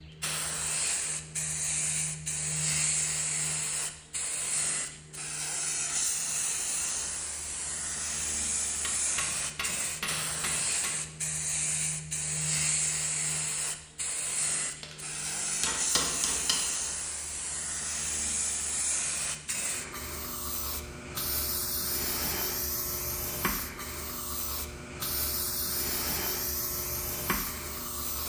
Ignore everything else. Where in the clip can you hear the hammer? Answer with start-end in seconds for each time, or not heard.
8.8-11.0, 14.8-16.6.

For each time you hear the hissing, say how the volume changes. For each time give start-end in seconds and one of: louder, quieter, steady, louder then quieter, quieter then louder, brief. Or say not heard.
0.0-28.2 steady.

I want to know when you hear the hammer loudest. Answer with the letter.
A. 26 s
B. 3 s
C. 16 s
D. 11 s
C.